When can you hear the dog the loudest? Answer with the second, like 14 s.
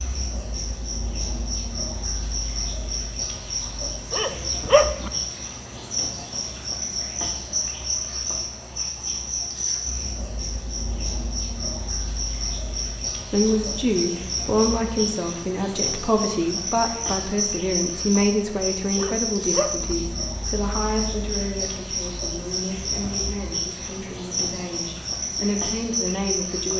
5 s.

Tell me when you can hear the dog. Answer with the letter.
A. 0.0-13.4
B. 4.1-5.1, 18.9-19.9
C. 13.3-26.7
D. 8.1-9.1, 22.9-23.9
B.